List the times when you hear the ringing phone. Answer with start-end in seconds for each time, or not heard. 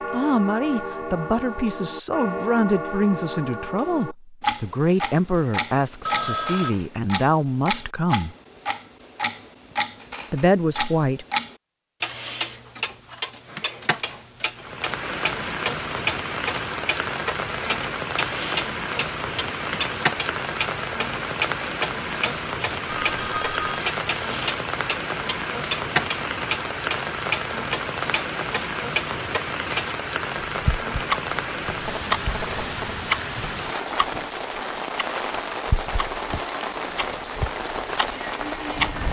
6.0-6.8, 22.9-23.9, 31.8-33.0.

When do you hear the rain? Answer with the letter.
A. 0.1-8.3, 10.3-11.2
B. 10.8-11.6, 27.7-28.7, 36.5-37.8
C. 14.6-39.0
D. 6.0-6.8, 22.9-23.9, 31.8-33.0
C.